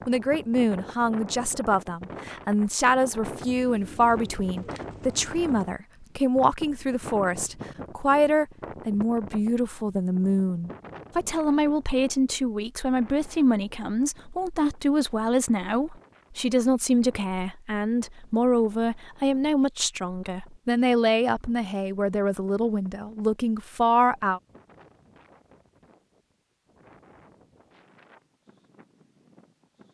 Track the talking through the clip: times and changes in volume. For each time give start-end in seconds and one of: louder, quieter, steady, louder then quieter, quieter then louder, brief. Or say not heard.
0.1-24.4 steady.